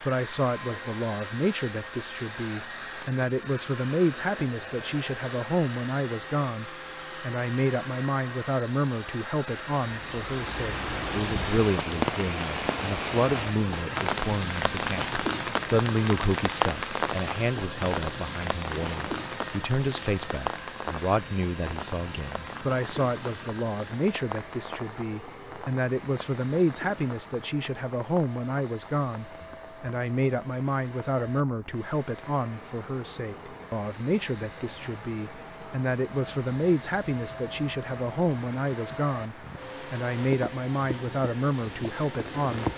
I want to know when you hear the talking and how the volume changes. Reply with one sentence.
You can hear the talking from 0.0 to 42.7 s, at a steady volume.